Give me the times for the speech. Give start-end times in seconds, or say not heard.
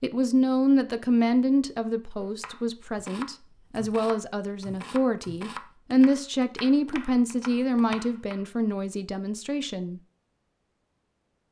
0.0-10.0.